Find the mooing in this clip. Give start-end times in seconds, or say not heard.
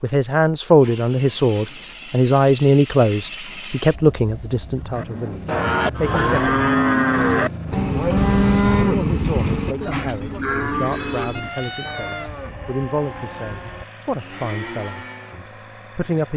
5.0-15.4.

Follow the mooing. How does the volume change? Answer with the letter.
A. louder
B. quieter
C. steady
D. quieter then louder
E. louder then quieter
B.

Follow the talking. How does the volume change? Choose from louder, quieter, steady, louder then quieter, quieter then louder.
quieter.